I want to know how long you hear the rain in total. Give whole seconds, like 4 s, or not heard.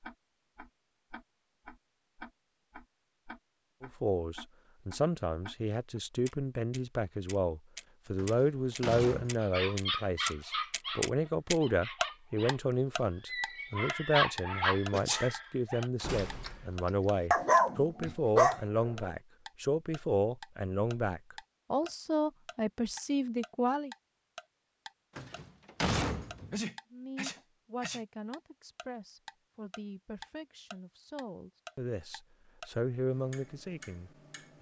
not heard.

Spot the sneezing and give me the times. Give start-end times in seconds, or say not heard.
14.9-15.3, 25.9-28.0.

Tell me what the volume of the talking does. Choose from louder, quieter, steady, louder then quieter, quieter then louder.
quieter.